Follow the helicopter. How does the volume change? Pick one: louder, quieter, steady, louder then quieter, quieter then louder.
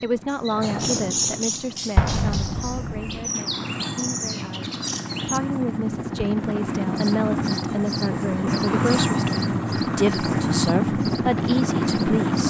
louder.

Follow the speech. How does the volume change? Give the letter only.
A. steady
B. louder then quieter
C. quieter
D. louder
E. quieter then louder
E.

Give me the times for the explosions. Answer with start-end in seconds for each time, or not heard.
1.9-3.2.